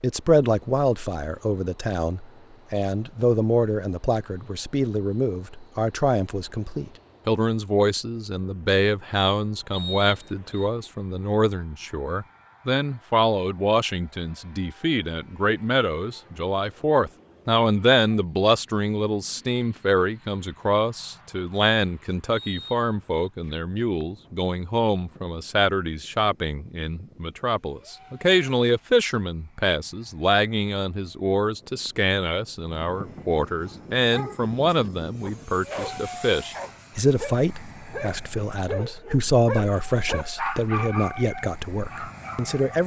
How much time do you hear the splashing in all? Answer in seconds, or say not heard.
not heard.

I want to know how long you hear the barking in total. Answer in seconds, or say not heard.
9 s.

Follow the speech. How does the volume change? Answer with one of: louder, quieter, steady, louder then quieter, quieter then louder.
steady.